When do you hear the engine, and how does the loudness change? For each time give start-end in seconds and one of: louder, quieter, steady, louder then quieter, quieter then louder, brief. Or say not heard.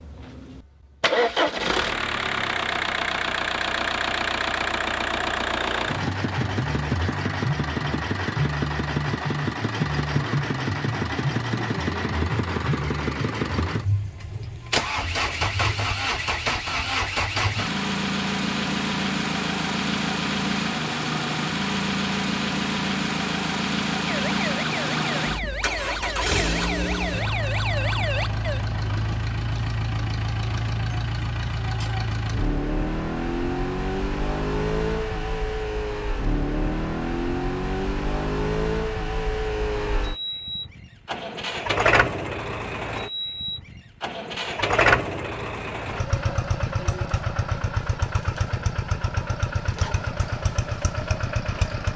0.0-51.9 steady.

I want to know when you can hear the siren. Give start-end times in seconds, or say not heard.
24.1-28.6.